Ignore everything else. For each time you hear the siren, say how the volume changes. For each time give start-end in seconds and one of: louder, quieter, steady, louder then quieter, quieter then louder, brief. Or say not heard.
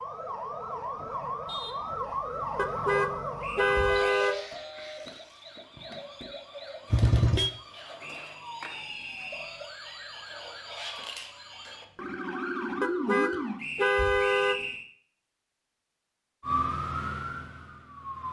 0.0-13.6 quieter then louder
16.4-18.2 brief.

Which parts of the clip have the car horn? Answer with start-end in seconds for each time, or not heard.
2.5-4.3, 6.9-7.5, 12.8-14.6.